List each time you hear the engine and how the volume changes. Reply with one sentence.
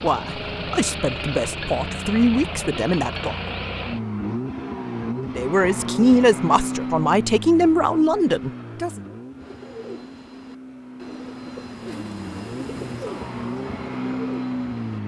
The engine can be heard from 0.0 to 15.0 s, getting quieter then louder.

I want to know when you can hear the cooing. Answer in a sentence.
You can hear the cooing from 9.3 to 15.0 s.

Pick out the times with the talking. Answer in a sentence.
You can hear the talking from 0.0 to 3.4 s and from 5.2 to 9.0 s.